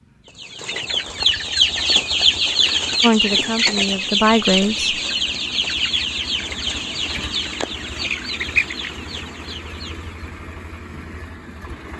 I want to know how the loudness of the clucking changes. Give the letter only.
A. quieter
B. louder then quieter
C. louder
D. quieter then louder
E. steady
A.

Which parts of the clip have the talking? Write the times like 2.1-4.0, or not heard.
3.0-5.0.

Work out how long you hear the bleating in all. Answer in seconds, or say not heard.
not heard.